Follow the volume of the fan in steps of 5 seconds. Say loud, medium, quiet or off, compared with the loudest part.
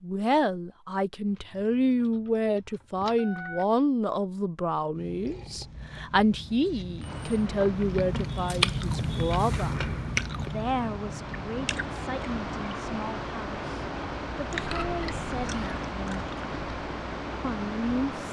off, medium, loud, loud.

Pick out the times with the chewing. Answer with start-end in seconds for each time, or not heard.
5.0-16.8.